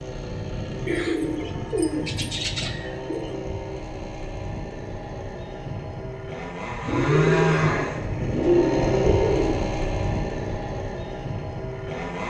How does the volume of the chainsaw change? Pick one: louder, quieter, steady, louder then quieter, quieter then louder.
louder then quieter.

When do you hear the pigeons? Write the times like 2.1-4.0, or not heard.
0.8-3.4, 6.8-9.6.